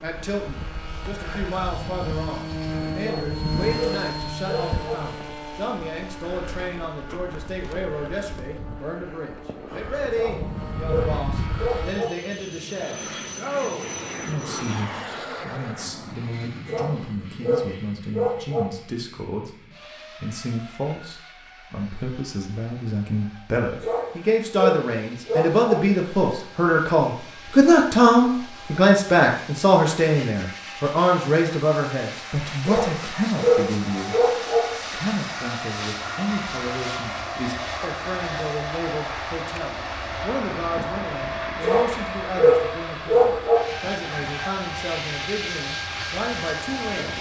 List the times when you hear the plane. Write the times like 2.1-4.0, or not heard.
0.0-47.1.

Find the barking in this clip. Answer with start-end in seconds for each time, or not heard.
3.0-5.0, 10.1-12.1, 16.6-18.6, 23.8-25.8, 32.6-34.6, 41.6-43.6.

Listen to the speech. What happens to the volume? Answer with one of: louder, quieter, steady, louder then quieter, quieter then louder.
louder then quieter.